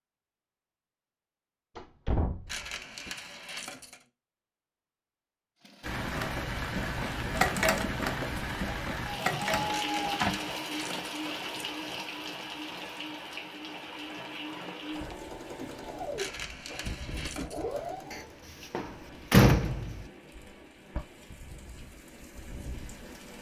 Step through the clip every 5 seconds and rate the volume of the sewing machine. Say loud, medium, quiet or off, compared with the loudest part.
off, loud, medium, medium, off.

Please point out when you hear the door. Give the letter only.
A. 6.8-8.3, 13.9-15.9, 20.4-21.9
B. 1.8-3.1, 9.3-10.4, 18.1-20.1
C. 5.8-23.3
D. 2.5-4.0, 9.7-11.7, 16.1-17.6
B.